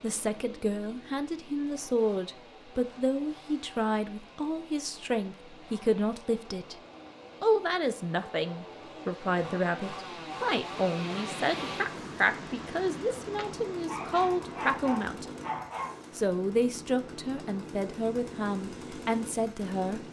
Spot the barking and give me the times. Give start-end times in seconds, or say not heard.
13.3-16.1.